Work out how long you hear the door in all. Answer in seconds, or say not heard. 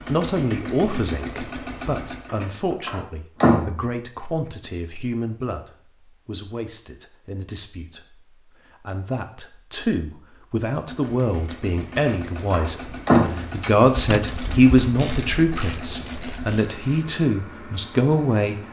3 s.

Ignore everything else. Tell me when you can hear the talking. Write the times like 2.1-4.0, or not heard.
0.0-18.6.